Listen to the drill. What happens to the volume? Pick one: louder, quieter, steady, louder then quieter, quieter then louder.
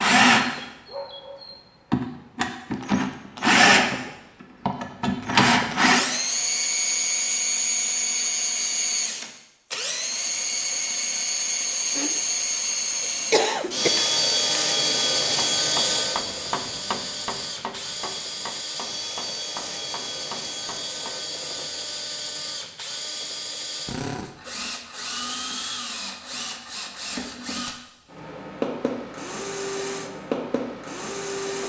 quieter.